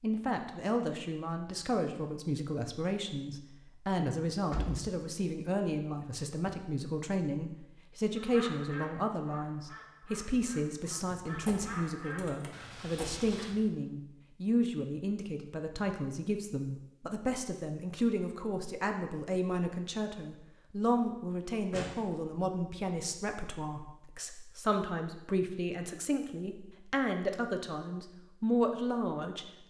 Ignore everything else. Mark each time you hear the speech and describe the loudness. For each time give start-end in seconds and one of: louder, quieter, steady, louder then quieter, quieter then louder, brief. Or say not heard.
0.0-29.6 steady.